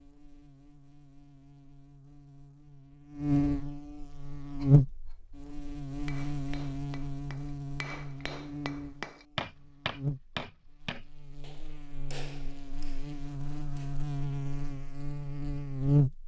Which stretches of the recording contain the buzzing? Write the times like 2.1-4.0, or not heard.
0.0-16.2.